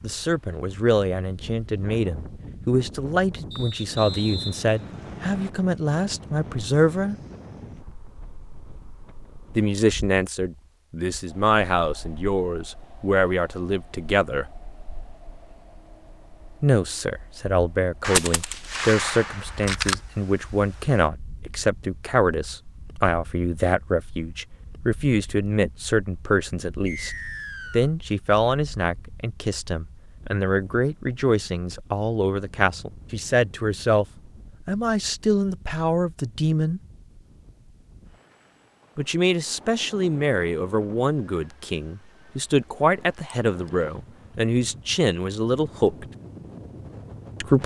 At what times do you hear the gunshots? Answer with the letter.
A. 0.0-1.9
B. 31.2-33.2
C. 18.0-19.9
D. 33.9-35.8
C.